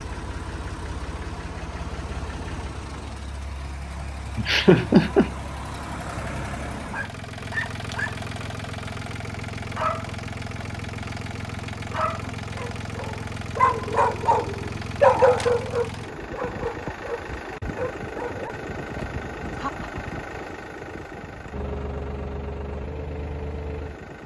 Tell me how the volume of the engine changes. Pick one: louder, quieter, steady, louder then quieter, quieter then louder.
steady.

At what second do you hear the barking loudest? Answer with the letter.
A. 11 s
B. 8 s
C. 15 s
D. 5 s
C.